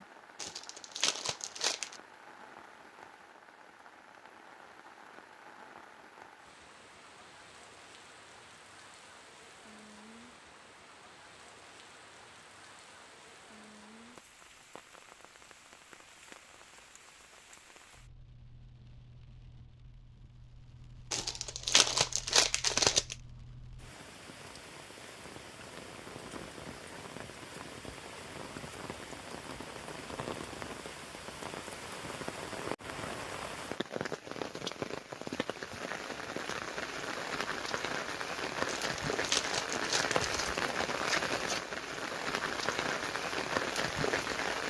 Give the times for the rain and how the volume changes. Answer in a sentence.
You can hear the rain from 0.0 to 44.6 s, getting louder.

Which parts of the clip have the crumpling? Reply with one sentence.
You can hear the crumpling from 0.3 to 2.0 s, from 21.1 to 23.1 s and from 38.6 to 40.5 s.